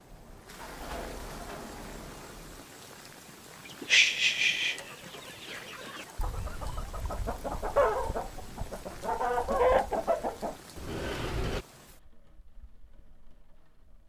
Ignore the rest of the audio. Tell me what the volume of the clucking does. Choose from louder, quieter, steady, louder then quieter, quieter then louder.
quieter then louder.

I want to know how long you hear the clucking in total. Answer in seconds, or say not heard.
7 s.